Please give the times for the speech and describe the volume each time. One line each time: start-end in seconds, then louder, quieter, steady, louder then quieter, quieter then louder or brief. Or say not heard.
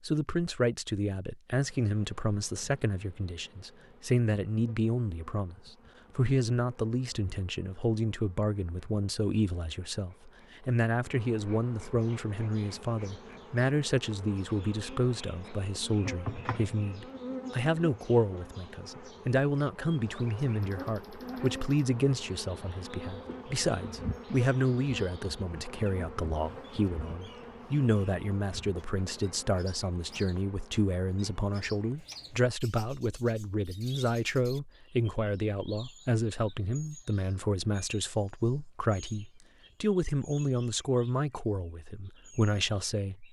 0.1-43.2 steady.